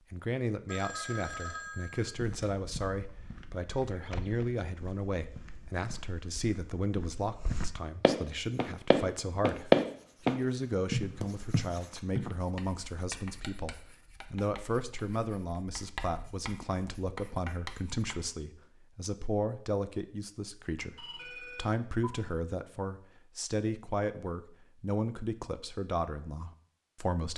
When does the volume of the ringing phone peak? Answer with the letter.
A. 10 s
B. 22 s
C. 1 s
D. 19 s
C.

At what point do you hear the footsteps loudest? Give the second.
10 s.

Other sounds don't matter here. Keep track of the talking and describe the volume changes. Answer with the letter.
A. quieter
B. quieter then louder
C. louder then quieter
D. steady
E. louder
D.